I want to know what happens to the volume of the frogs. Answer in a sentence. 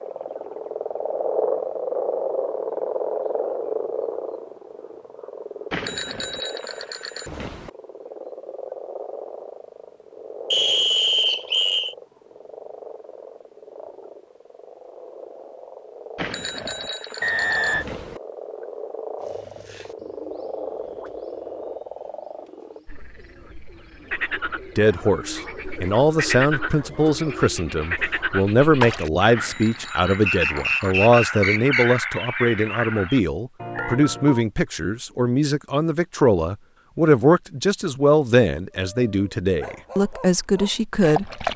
The volume of the frogs goes down, then up.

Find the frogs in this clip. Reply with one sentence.
The frogs can be heard from 0.0 to 34.5 s.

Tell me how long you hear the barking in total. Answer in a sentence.
You can hear the barking for 3 seconds altogether.